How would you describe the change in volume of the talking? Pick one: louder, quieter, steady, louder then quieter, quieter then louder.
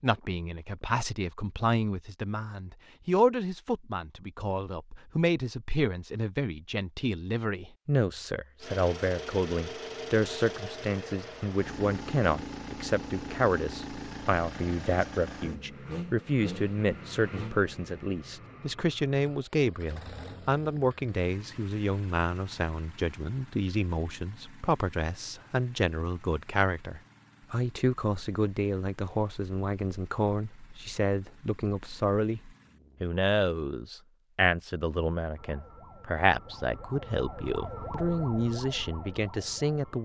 steady.